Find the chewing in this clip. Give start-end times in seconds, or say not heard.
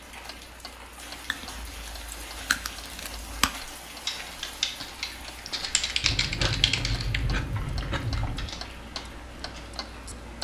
1.2-3.6, 6.0-8.6.